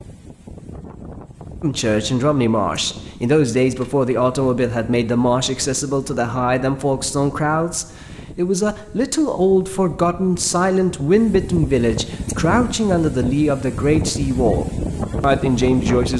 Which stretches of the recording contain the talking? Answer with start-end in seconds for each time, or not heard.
1.6-16.1.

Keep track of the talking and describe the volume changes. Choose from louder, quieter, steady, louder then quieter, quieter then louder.
steady.